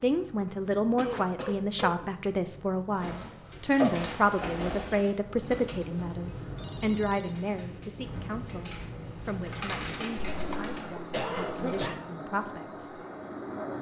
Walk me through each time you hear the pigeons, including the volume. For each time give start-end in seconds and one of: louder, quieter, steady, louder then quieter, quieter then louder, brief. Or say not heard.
3.0-11.9 quieter then louder.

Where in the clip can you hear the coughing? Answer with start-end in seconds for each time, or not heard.
0.9-2.1, 10.2-12.0.